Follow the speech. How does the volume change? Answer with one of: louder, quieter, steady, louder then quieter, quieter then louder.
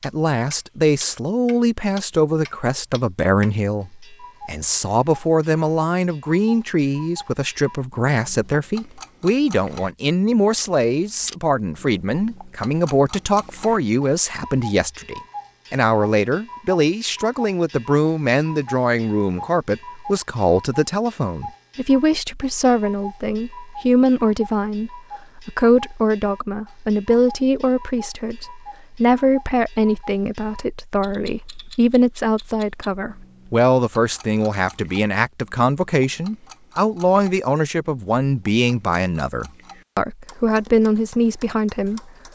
steady.